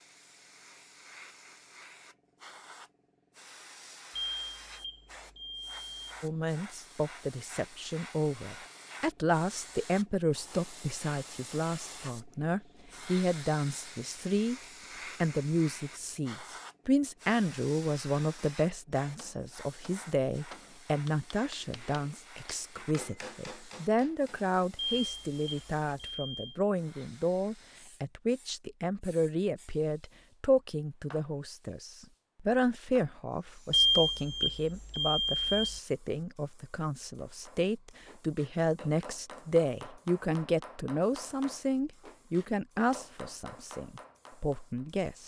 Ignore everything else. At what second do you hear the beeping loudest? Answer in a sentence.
The volume of the beeping peaks at 34 seconds.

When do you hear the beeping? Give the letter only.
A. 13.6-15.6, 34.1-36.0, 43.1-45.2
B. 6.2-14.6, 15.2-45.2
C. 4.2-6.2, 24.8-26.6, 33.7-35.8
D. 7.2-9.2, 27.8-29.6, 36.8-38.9
C.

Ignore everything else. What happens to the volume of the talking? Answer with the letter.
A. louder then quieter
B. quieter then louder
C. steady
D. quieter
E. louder
C.